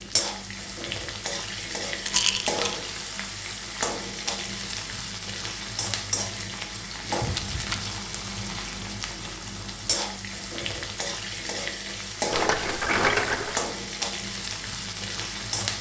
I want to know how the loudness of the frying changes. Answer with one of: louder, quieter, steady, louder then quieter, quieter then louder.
steady.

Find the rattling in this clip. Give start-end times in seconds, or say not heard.
2.0-2.8, 6.9-7.8, 12.3-13.6.